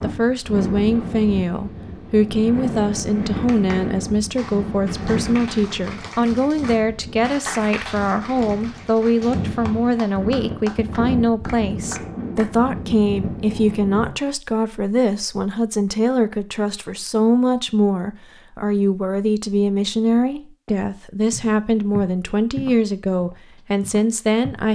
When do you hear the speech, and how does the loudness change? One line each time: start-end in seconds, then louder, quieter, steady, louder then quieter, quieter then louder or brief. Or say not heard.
0.0-24.6 steady.